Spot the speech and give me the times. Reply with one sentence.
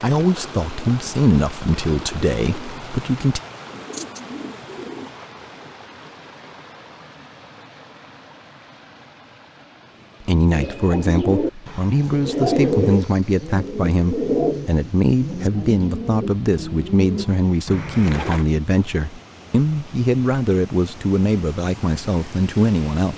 You can hear the speech from 0.0 to 3.4 s and from 10.2 to 23.1 s.